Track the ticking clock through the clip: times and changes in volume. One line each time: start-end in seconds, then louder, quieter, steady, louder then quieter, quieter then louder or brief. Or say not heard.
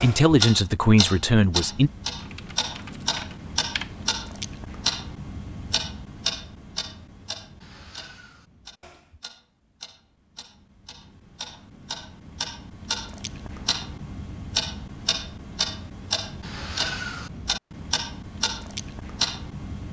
0.0-19.8 quieter then louder.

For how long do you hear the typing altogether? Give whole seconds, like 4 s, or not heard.
2 s.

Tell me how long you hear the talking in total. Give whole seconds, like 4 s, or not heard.
2 s.